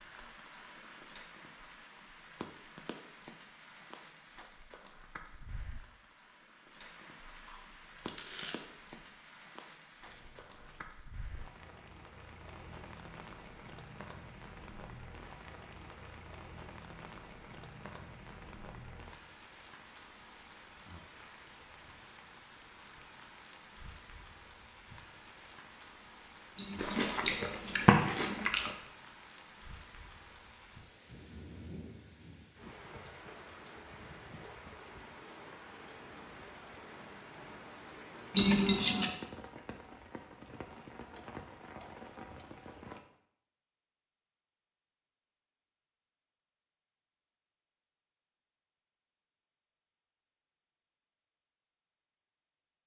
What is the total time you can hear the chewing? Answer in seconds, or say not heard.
4 s.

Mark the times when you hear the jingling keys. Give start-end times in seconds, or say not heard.
10.1-10.9, 26.6-28.5, 38.4-39.1.